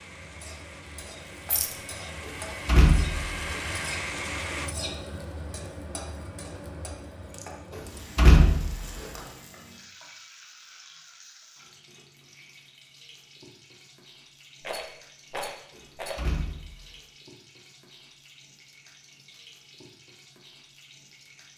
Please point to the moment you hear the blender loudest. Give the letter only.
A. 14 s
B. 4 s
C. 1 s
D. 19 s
B.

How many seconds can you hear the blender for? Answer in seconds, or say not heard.
5 s.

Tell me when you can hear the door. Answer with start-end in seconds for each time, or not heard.
2.6-3.2, 8.2-8.8, 16.1-16.8.